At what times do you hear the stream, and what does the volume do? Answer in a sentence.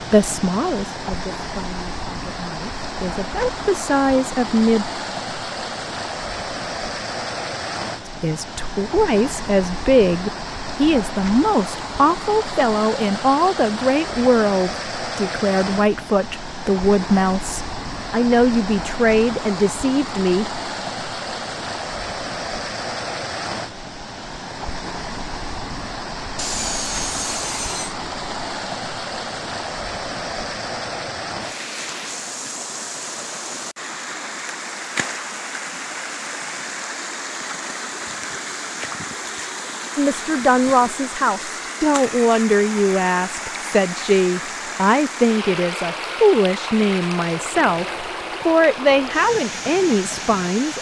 The stream can be heard from 0.0 to 50.7 s, at a steady volume.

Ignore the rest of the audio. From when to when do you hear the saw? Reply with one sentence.
You can hear the saw from 26.4 to 27.9 s.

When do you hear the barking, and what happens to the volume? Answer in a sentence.
You can't hear the barking here.